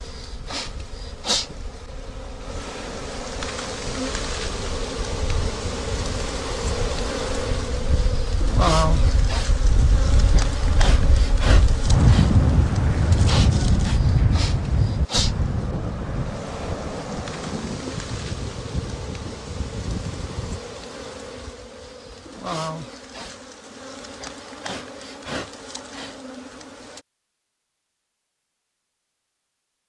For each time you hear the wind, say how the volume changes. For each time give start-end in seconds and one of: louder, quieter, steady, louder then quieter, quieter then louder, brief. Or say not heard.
0.0-20.6 louder then quieter.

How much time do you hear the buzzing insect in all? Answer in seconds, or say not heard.
27 s.